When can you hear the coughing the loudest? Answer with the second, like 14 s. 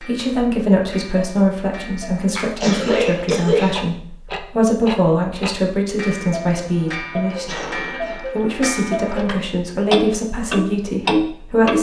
3 s.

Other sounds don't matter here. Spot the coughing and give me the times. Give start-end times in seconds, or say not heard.
2.4-3.7, 7.5-8.2.